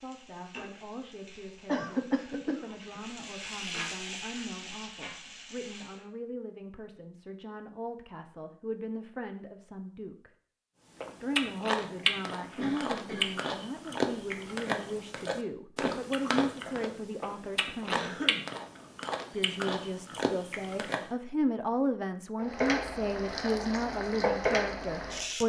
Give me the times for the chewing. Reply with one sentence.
The chewing can be heard from 11.0 to 21.1 s.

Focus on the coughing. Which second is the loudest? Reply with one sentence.
The volume of the coughing peaks at 2 seconds.